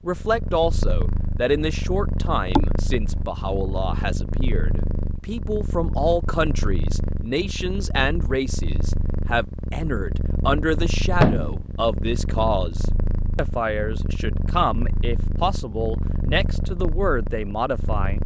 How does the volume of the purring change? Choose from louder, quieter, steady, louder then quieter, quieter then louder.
steady.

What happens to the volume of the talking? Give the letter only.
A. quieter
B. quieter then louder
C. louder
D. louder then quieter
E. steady
E.